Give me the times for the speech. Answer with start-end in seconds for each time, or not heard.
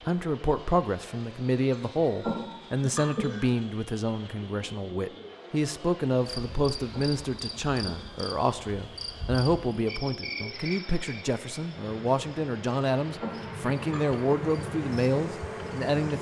0.1-16.1.